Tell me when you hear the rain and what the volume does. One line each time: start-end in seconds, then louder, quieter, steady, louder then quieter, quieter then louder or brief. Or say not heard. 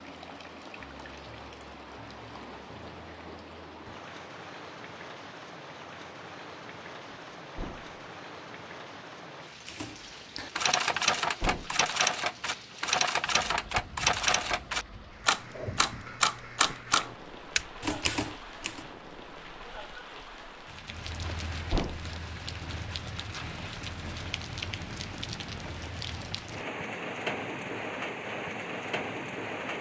0.0-29.7 louder.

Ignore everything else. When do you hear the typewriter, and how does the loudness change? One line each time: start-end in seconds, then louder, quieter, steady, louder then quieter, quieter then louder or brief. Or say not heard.
9.7-18.9 steady.